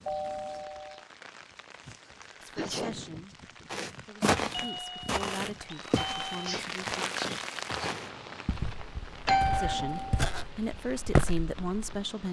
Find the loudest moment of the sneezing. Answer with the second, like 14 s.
3 s.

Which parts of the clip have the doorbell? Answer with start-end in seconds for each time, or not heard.
0.1-1.1, 4.5-6.6, 9.2-10.2.